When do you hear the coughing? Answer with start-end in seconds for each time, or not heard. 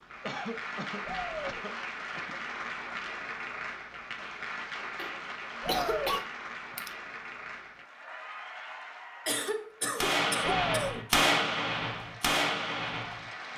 0.2-2.4, 5.0-6.9, 9.2-11.1.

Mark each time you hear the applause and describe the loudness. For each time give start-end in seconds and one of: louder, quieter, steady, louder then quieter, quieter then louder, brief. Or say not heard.
0.0-13.5 quieter.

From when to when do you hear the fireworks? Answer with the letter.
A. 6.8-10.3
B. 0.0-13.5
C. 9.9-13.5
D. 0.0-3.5
C.